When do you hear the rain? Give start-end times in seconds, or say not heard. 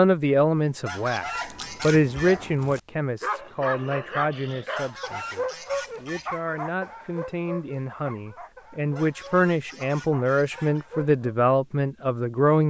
not heard.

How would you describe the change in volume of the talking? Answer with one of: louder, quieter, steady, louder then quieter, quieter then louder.
quieter then louder.